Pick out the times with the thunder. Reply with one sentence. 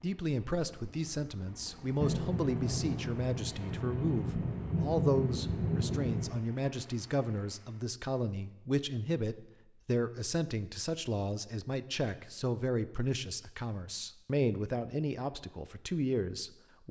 You can hear the thunder from 2.0 to 6.3 s.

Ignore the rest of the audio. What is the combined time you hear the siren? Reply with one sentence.
The siren can't be heard in this clip.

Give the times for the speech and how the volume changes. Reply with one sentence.
You can hear the speech from 0.0 to 16.8 s, at a steady volume.